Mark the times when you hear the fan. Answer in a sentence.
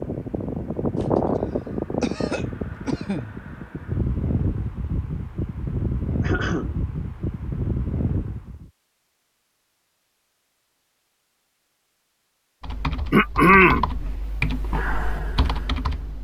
You can hear the fan from 0.0 to 8.7 s.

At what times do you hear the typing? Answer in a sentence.
You can hear the typing from 12.6 to 16.1 s.